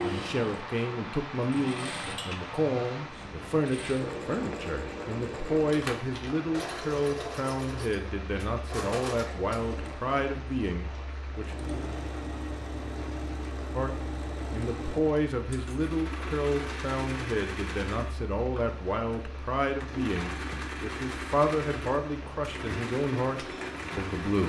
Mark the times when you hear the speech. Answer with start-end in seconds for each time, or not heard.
0.0-11.6, 13.8-24.4.